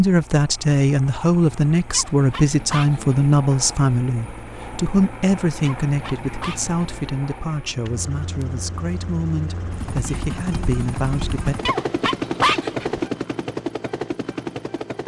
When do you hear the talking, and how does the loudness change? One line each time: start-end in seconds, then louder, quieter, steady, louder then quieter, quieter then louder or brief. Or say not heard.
0.0-11.6 quieter.